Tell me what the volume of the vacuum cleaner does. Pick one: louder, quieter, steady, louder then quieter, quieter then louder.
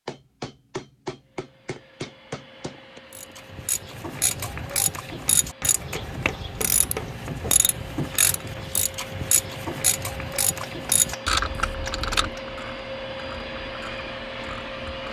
louder.